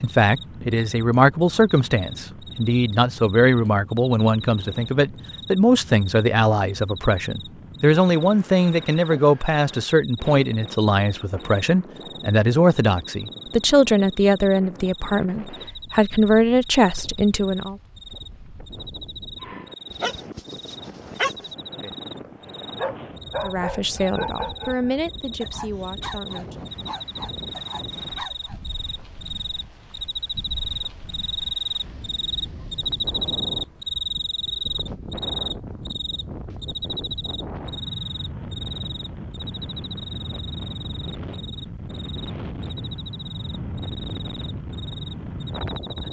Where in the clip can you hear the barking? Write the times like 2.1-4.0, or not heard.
19.4-28.6.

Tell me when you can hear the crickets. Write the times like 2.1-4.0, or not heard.
0.1-46.0.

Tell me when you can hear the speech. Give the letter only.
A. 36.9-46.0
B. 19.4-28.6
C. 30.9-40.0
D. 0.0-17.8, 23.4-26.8
D.